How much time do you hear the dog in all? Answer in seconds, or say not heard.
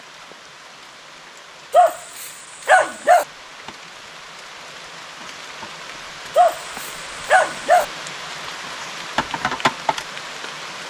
3 s.